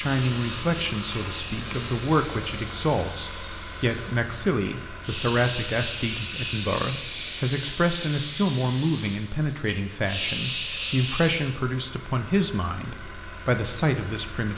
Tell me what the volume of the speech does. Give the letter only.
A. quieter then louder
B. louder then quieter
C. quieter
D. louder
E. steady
E.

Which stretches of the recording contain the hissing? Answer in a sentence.
The hissing can be heard from 0.0 to 11.5 s.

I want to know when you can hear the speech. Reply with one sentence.
You can hear the speech from 0.0 to 14.5 s.